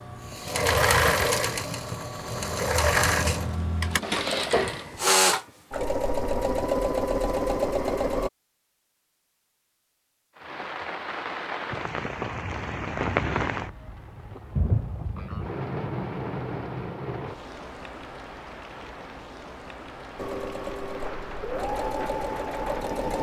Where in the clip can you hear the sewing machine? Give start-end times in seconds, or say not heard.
0.0-8.3, 20.1-23.1.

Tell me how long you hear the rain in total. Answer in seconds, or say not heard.
13 s.